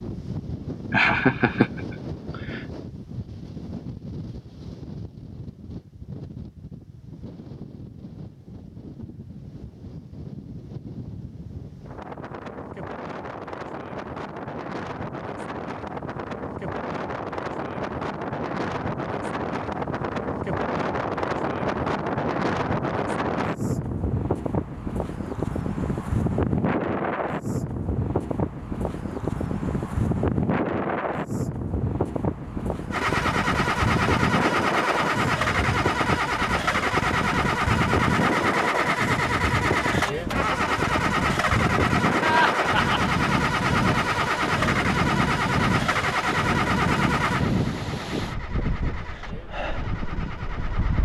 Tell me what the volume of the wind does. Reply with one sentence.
The volume of the wind goes up.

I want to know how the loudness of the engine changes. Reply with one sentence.
The loudness of the engine goes down.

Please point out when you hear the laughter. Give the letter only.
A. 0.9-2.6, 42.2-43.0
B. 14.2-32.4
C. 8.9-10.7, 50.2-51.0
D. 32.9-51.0
A.